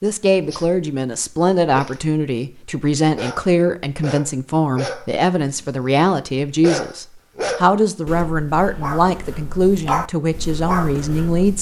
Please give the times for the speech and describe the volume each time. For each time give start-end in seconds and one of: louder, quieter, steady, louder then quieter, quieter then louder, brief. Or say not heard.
0.0-11.5 steady.